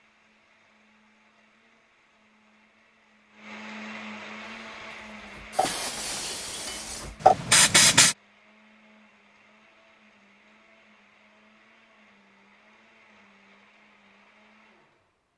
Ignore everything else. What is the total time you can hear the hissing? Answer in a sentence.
You can hear the hissing for 4 seconds altogether.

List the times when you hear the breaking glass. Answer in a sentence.
You can hear the breaking glass from 5.6 to 7.2 s.